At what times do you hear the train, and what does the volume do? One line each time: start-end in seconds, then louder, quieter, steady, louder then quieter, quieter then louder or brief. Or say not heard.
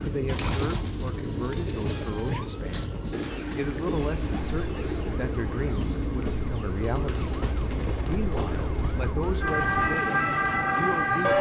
0.0-11.3 steady.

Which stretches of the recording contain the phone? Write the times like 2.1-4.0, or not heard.
not heard.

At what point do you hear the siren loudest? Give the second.
11 s.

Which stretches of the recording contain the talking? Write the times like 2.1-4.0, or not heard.
0.0-7.3, 8.1-11.3.